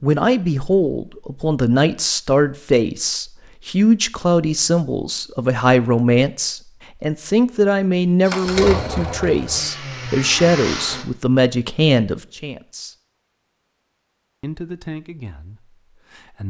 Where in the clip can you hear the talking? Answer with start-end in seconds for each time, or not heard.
0.0-12.9, 14.4-16.4.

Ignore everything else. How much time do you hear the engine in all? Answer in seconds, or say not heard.
3 s.